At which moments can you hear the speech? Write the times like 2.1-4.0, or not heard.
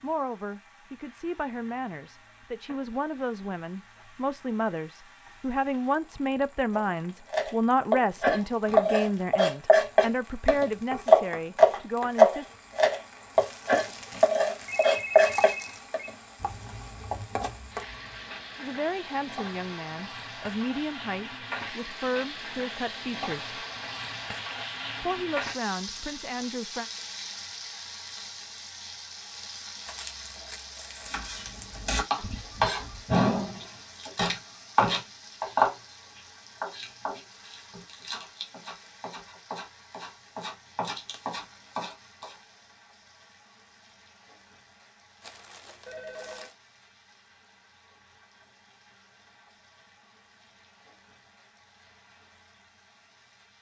0.0-12.5, 18.6-23.6, 25.0-26.9.